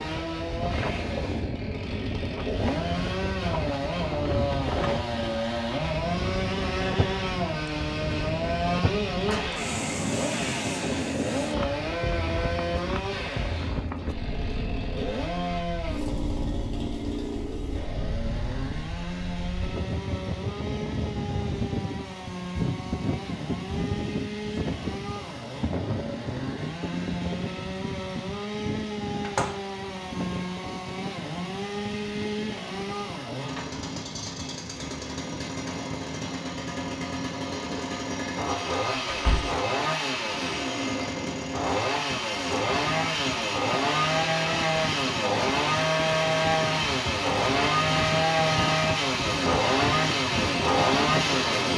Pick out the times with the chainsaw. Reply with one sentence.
The chainsaw can be heard from 0.0 to 51.7 s.